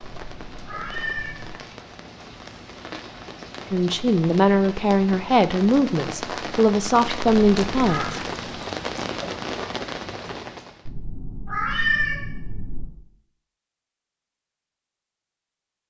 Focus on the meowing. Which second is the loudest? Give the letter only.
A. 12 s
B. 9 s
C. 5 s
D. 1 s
A.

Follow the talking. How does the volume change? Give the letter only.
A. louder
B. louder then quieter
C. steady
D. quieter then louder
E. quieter
C.